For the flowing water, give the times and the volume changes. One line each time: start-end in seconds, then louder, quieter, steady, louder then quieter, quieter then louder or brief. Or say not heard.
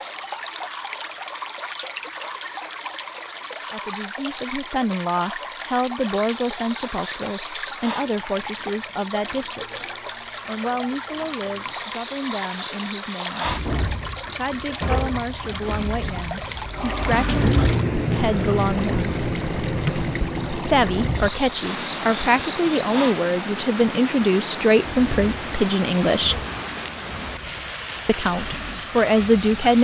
0.0-29.8 steady.